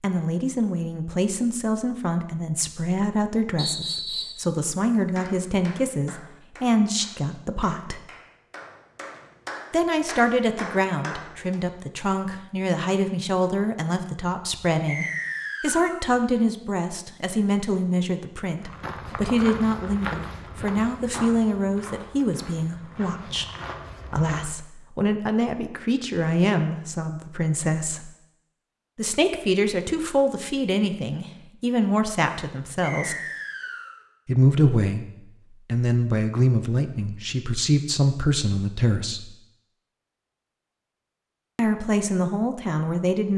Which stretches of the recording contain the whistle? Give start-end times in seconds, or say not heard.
3.5-4.4, 14.8-16.0, 32.8-34.0.